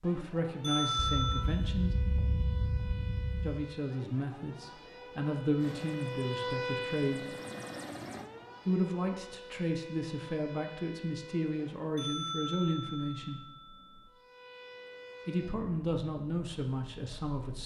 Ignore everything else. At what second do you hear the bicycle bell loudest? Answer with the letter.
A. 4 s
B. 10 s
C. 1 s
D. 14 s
C.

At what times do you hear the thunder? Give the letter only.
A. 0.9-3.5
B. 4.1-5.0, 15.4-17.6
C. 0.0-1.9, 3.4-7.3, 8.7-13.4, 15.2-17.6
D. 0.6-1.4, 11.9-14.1
A.